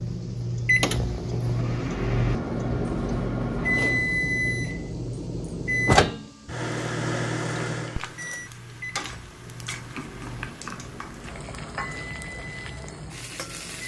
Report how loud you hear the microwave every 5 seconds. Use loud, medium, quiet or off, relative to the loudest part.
loud, loud, quiet.